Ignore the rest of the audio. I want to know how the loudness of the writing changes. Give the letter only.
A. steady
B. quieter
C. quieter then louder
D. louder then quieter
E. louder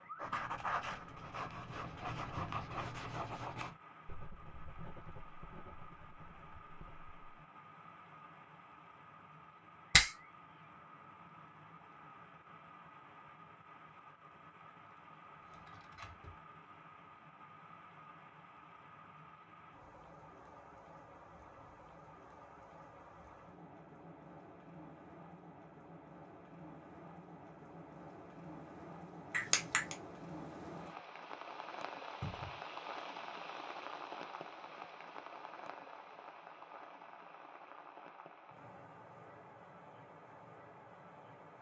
B.